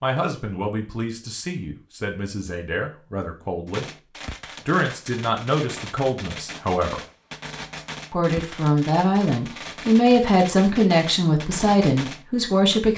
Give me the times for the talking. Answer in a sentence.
The talking can be heard from 0.0 to 3.9 s, from 4.7 to 7.0 s and from 8.1 to 12.9 s.